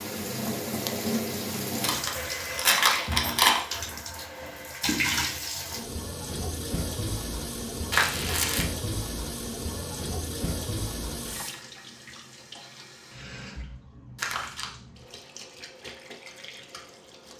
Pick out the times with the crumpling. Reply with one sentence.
The crumpling can be heard from 1.8 to 3.6 s, from 7.9 to 8.7 s and from 14.2 to 14.7 s.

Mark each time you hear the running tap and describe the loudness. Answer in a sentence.
You can hear the running tap from 0.0 to 17.3 s, getting quieter.